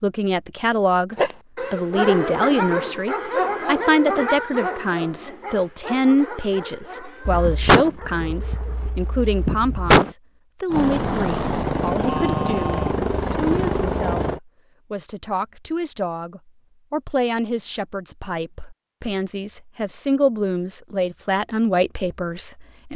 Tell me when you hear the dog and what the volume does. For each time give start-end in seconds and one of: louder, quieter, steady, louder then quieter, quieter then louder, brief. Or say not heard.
1.1-8.9 quieter.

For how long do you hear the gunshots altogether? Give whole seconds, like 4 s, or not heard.
3 s.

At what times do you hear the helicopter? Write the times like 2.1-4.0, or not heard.
10.7-14.4.